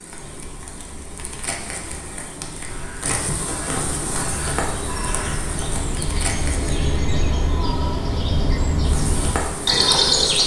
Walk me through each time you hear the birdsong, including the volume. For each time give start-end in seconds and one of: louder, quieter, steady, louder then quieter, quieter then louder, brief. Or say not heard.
0.1-10.4 louder.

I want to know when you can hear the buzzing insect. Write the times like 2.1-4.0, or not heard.
0.0-6.8, 8.8-10.4.